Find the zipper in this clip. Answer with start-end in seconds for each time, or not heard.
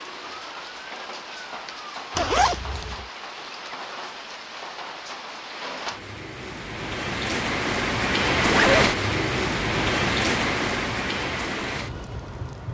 2.1-3.0, 8.4-8.9.